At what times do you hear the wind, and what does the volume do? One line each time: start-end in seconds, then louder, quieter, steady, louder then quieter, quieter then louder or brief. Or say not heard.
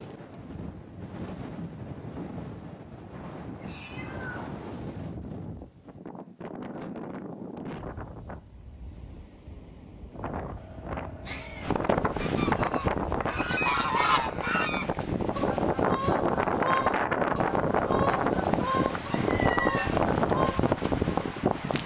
0.0-21.8 louder.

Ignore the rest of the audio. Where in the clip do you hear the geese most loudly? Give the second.
14 s.